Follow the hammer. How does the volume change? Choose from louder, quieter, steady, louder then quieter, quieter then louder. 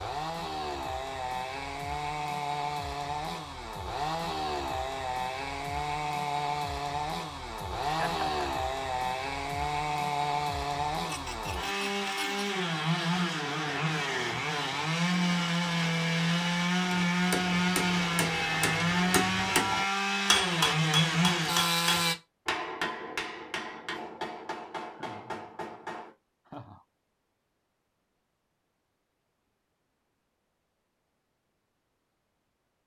louder then quieter.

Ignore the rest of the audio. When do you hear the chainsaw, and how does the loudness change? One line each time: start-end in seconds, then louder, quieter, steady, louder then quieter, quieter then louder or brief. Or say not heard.
0.0-22.1 louder.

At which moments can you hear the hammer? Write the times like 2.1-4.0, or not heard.
16.9-26.6.